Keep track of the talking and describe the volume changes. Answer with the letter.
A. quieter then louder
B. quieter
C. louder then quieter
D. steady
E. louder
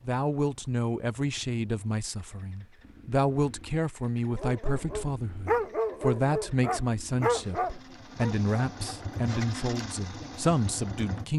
D.